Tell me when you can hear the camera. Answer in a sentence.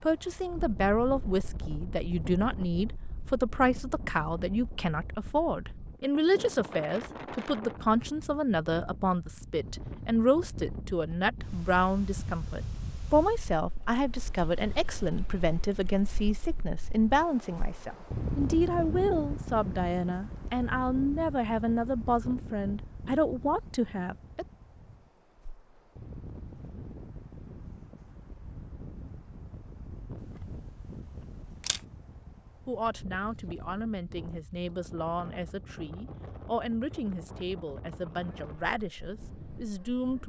You can hear the camera from 30.1 to 31.9 s.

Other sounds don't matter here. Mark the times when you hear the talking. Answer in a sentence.
The talking can be heard from 0.0 to 24.4 s and from 32.6 to 40.2 s.